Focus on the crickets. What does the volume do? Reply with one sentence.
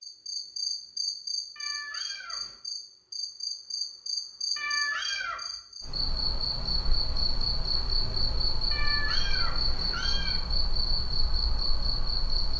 The loudness of the crickets stays about the same.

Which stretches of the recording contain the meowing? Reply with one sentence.
You can hear the meowing from 1.6 to 2.5 s, from 4.5 to 5.4 s and from 8.7 to 10.4 s.